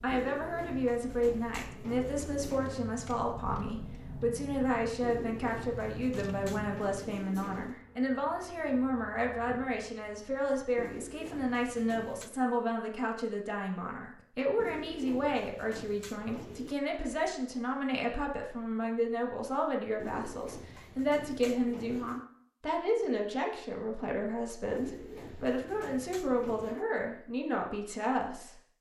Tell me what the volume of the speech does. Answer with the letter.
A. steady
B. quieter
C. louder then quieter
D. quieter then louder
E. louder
A.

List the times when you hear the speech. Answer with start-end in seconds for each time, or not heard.
0.0-28.6.